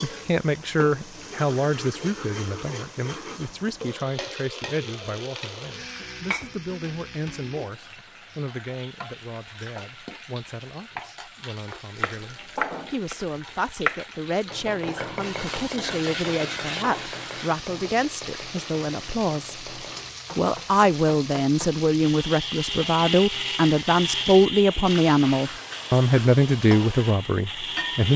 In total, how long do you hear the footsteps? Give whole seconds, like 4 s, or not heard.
not heard.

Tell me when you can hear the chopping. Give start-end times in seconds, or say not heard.
11.7-21.8.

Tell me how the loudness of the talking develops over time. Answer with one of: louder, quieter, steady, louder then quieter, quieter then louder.
quieter then louder.